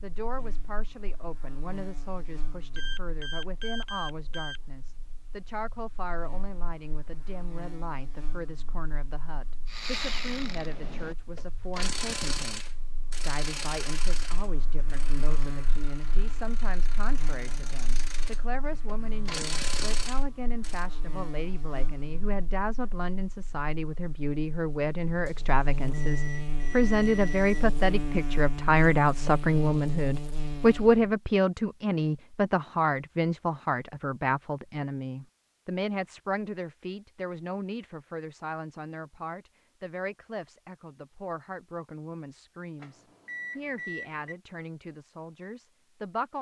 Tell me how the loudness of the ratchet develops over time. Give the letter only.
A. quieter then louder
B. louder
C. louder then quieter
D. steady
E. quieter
A.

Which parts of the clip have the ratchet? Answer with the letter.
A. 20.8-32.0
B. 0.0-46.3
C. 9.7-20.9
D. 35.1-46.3
C.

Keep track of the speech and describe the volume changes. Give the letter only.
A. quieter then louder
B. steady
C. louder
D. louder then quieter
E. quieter
D.